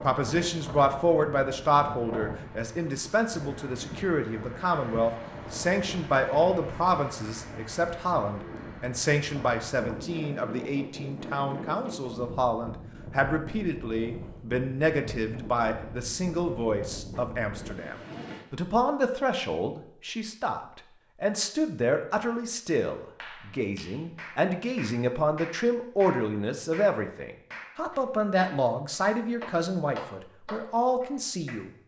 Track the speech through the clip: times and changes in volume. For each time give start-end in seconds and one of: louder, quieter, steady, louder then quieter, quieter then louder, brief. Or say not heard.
0.0-31.7 steady.